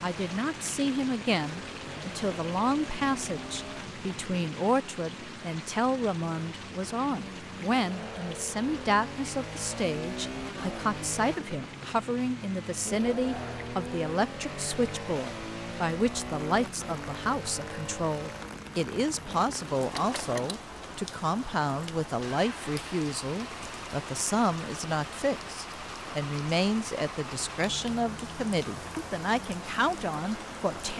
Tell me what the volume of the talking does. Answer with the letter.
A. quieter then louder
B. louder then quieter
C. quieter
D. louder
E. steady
E.